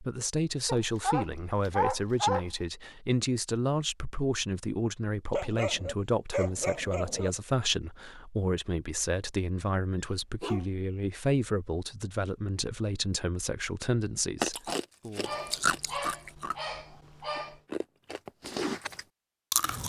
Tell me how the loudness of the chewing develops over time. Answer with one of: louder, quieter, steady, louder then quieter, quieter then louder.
quieter then louder.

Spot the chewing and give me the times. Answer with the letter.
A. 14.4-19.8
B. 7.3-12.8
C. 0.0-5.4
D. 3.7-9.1
A.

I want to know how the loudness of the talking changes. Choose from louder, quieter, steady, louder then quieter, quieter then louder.
steady.